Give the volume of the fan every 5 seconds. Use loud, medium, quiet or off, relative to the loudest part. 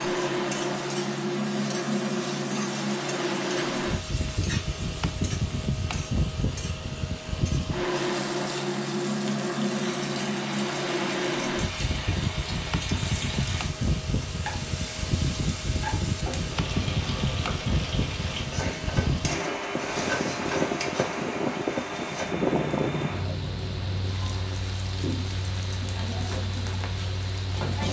loud, loud, loud, loud, loud, medium.